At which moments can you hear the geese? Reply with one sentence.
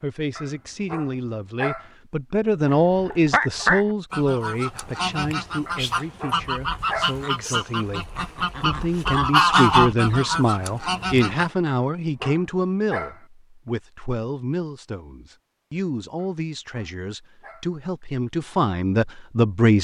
The geese can be heard from 2.6 to 11.5 s.